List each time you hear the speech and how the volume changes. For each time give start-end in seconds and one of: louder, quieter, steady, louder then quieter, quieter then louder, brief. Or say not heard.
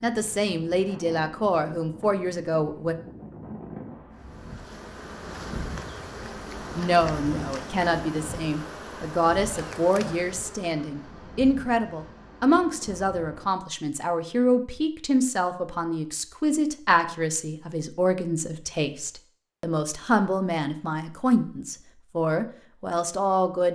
0.0-3.0 brief
6.8-23.7 steady.